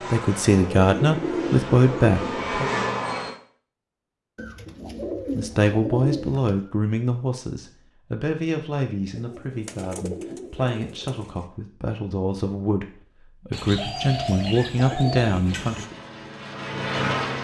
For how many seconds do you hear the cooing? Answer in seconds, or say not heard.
9 s.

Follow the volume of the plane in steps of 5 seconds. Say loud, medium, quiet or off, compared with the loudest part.
loud, off, off, loud.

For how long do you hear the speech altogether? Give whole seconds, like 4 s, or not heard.
13 s.